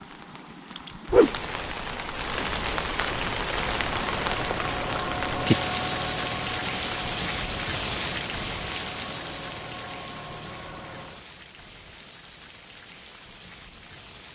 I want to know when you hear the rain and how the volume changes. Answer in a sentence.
You can hear the rain from 0.0 to 14.3 s, getting quieter.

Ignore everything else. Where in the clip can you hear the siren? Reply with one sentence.
You can't hear the siren here.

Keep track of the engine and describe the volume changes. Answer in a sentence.
The loudness of the engine goes down.